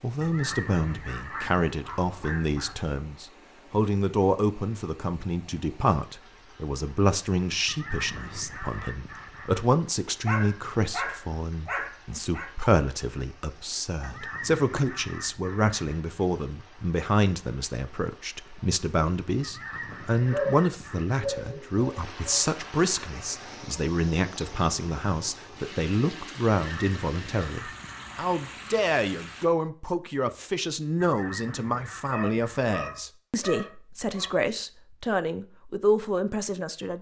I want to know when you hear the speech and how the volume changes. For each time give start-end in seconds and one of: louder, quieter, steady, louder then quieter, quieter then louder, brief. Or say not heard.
0.0-36.9 steady.